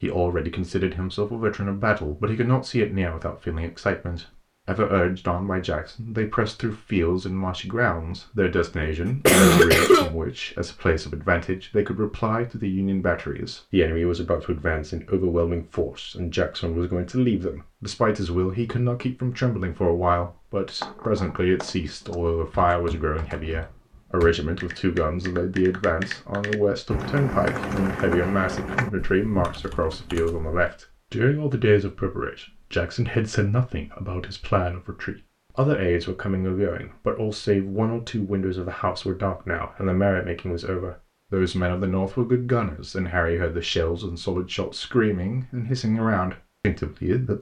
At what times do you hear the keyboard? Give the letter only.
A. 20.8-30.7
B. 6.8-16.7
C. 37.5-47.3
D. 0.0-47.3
A.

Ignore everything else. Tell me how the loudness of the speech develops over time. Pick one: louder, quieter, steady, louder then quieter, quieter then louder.
steady.